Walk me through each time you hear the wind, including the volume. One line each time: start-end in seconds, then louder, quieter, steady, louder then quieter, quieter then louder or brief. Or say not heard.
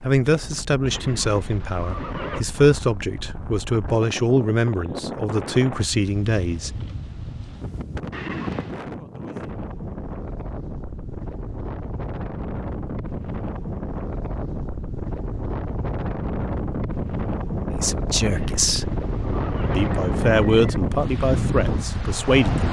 0.0-22.6 louder.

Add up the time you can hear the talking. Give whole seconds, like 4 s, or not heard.
11 s.